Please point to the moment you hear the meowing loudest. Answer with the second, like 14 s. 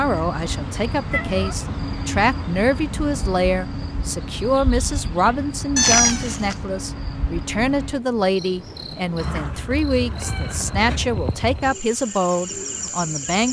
6 s.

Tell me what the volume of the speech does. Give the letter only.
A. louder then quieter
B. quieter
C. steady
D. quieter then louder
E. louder
C.